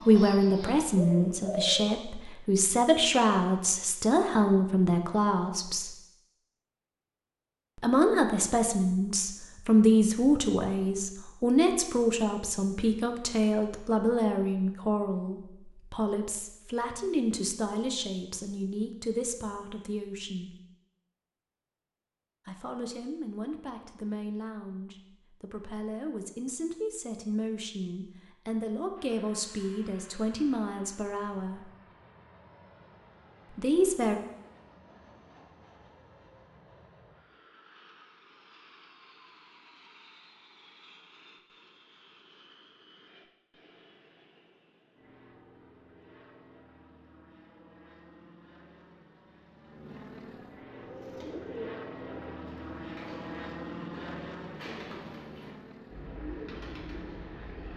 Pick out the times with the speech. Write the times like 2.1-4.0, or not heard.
0.1-6.0, 7.8-20.6, 22.4-31.7, 33.5-34.2.